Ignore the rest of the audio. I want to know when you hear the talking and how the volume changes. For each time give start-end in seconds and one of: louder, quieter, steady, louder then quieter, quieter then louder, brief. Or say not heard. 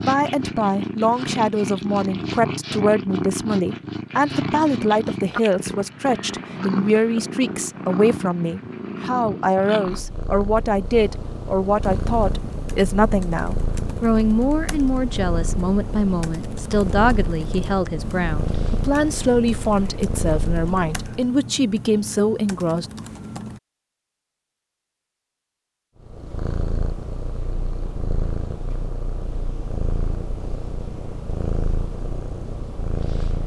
0.0-22.9 steady.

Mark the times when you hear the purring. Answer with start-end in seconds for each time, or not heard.
0.0-21.3, 26.0-33.4.